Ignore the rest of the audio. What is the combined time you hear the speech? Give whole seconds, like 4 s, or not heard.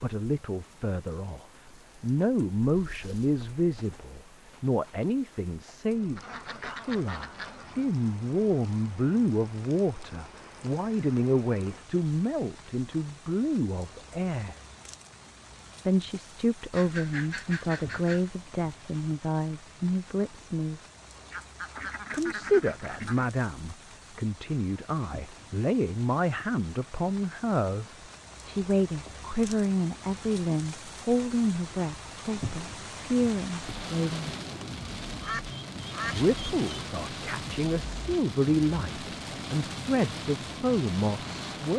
37 s.